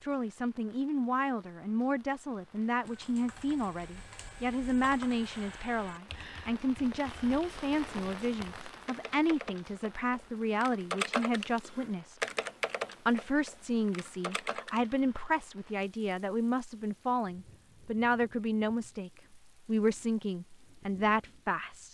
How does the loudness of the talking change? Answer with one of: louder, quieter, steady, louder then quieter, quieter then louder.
steady.